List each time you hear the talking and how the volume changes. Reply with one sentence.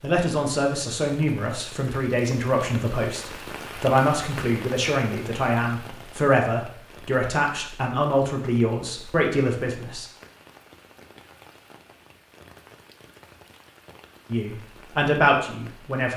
The talking can be heard from 0.0 to 10.1 s, at a steady volume; and briefly from 14.3 to 16.1 s.